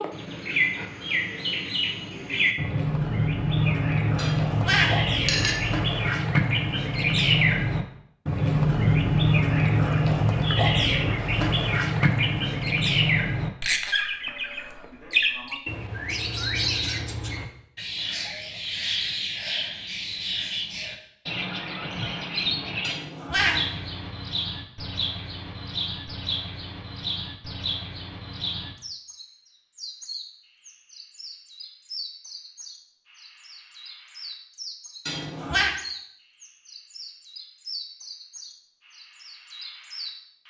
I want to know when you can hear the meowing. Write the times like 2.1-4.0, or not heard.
4.2-5.5, 22.8-23.8, 35.0-35.8.